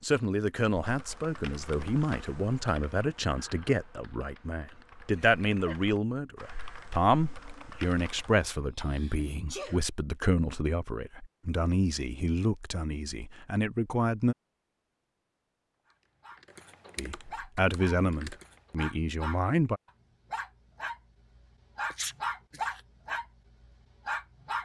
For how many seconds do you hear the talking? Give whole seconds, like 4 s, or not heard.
17 s.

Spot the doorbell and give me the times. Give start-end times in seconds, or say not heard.
not heard.